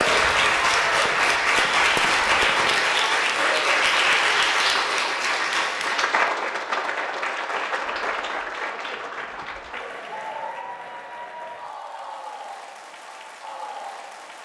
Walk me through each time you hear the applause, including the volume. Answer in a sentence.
You can hear the applause from 0.0 to 14.4 s, getting quieter.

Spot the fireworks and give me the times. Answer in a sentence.
The fireworks can be heard from 0.0 to 3.0 s.